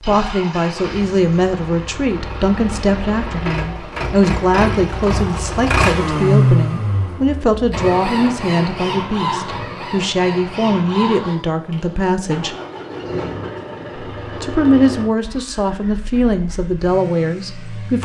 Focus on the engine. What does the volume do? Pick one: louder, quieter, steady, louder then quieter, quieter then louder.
louder then quieter.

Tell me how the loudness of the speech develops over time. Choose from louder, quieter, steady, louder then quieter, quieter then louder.
steady.